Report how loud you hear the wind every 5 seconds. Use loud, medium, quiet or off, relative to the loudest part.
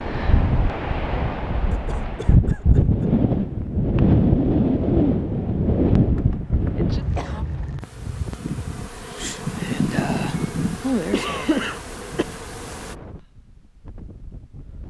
loud, loud, quiet.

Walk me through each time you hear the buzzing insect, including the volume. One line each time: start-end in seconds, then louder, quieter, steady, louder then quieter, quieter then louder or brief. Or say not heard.
7.8-12.9 louder then quieter.